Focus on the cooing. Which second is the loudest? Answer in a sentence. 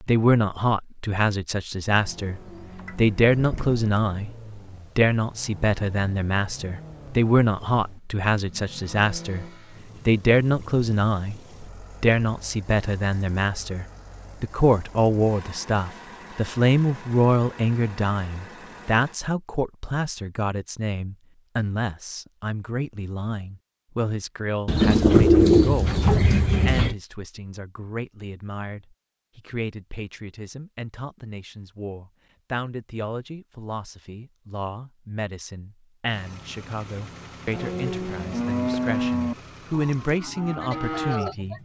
The loudest moment of the cooing is at 25 seconds.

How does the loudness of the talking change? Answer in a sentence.
The loudness of the talking goes down.